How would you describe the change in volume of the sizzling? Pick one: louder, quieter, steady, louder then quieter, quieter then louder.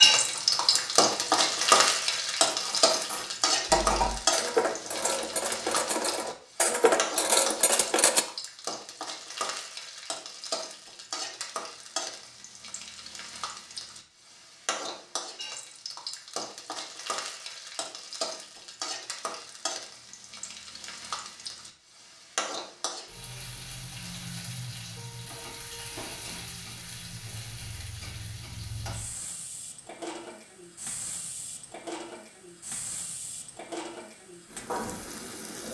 quieter.